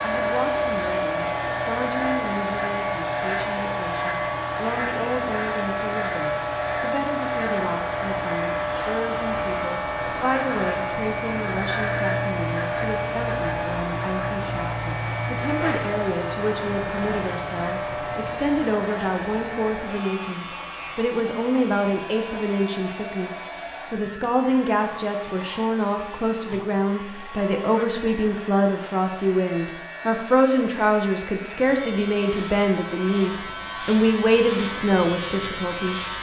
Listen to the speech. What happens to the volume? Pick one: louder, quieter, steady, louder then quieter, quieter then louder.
louder.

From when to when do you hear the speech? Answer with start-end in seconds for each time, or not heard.
0.0-36.1.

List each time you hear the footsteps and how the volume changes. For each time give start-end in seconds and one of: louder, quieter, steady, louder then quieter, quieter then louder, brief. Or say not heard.
not heard.